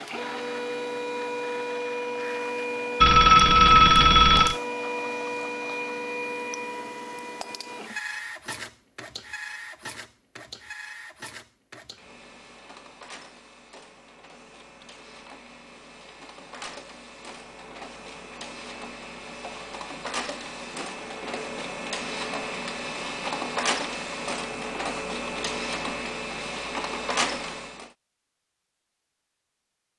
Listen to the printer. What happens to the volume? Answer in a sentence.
The volume of the printer goes down, then up.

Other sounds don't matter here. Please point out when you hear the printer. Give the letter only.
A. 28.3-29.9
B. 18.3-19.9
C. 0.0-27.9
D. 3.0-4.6
C.